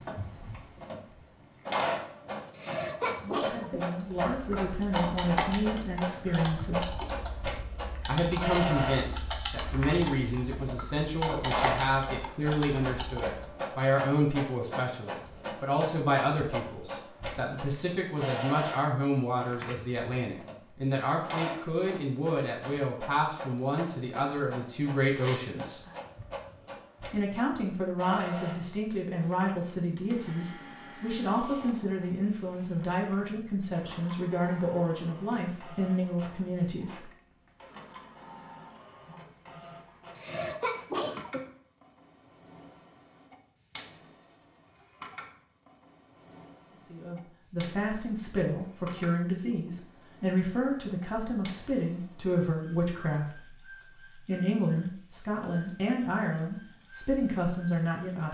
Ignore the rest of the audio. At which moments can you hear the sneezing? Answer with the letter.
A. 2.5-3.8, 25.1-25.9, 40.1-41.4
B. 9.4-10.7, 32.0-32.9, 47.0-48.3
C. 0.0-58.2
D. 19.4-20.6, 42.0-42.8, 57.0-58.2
A.